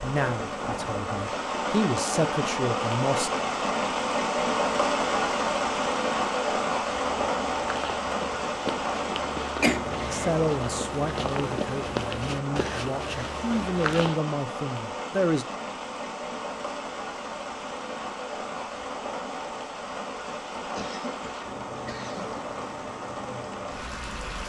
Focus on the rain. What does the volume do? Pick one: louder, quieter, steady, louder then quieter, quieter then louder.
quieter.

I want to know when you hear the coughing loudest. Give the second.
10 s.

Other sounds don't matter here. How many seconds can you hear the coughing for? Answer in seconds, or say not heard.
2 s.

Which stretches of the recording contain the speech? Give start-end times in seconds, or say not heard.
0.0-3.3, 10.1-15.4.